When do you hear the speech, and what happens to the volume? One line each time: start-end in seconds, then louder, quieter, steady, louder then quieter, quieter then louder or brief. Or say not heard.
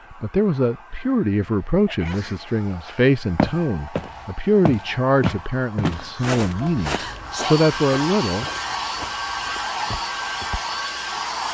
0.1-8.4 steady.